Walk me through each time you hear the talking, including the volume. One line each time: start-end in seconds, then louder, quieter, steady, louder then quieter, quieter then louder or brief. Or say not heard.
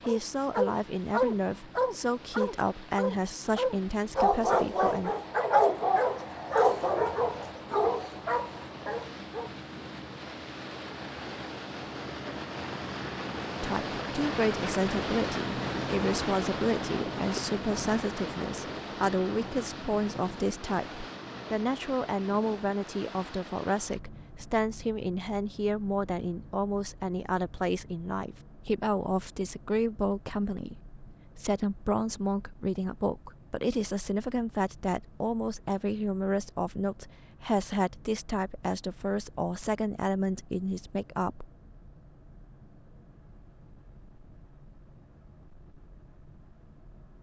0.0-5.1 steady
13.6-41.5 steady.